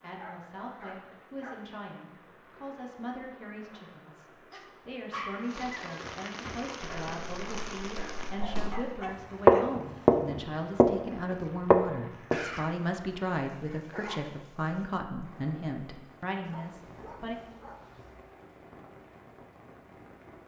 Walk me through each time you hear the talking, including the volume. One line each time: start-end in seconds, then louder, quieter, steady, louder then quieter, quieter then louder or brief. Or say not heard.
0.0-17.4 louder.